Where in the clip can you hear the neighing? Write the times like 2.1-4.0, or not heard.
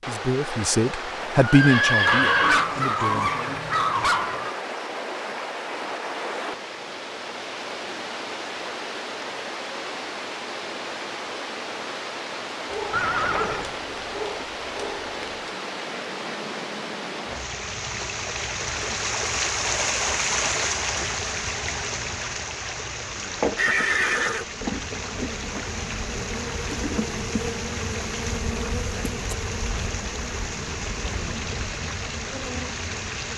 1.4-2.6, 12.9-13.8, 23.6-24.4.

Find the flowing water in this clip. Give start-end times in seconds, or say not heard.
0.0-33.3.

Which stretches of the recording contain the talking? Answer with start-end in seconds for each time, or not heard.
0.1-3.3.